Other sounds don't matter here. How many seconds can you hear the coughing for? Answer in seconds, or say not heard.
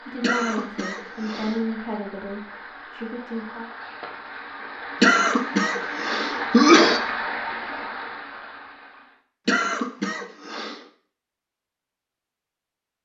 5 s.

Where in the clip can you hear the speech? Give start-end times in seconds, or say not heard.
0.0-3.7.